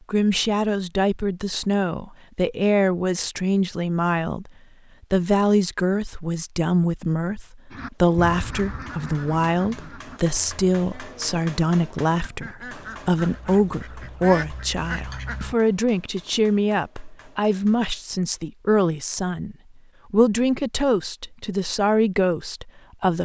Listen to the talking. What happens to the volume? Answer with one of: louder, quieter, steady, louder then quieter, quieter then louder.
steady.